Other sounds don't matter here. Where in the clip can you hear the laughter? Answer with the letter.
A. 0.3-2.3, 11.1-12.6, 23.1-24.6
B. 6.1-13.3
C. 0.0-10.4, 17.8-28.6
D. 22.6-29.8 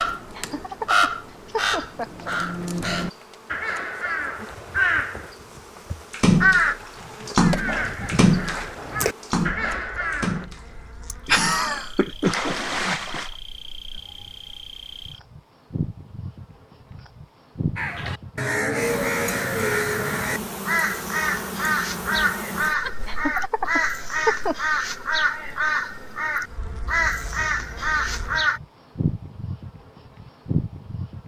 A.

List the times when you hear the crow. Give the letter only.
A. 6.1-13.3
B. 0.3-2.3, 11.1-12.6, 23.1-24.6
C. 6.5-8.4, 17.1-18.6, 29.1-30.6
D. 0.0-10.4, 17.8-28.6
D.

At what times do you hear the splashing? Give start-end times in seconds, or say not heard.
6.1-13.3.